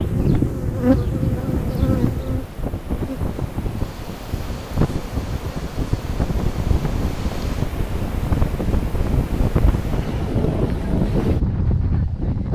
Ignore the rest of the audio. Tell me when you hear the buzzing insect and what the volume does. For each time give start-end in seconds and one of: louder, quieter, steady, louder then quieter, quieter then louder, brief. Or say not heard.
0.0-7.7 quieter.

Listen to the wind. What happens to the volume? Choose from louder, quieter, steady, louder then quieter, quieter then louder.
louder.